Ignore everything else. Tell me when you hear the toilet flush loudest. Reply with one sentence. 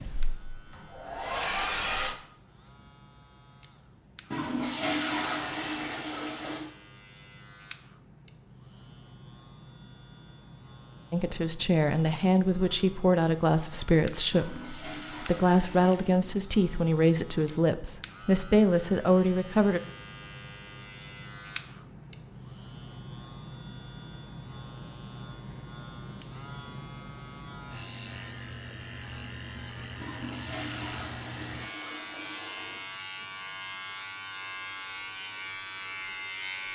The loudest moment of the toilet flush is at 5 seconds.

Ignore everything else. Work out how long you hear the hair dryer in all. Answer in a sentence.
The hair dryer can be heard for 2 seconds in total.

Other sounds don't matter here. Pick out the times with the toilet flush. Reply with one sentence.
The toilet flush can be heard from 4.3 to 6.6 s, from 14.3 to 16.2 s and from 29.9 to 32.8 s.